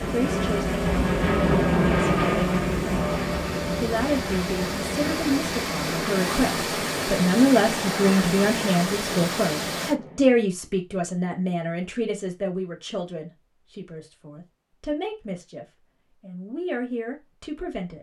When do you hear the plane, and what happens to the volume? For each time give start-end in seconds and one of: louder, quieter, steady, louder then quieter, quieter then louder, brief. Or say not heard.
0.0-10.4 quieter.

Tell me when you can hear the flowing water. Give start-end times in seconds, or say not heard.
0.0-9.9.